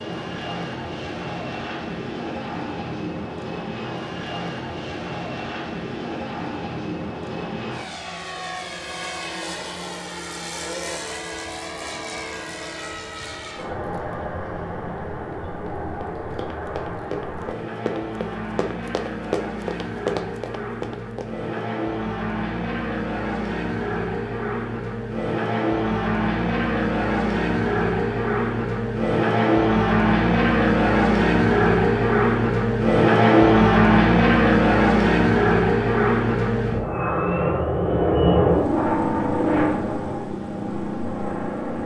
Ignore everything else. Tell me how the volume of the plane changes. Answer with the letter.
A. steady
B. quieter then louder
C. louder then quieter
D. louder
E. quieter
D.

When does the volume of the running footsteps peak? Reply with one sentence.
The volume of the running footsteps peaks at 20 seconds.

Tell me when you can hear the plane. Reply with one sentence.
The plane can be heard from 0.0 to 41.8 s.